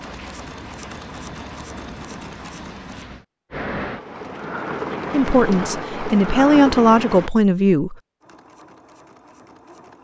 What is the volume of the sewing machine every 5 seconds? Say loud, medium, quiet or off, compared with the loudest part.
loud, medium.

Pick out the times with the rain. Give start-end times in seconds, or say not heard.
0.0-7.3.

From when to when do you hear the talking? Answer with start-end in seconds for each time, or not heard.
5.1-8.0.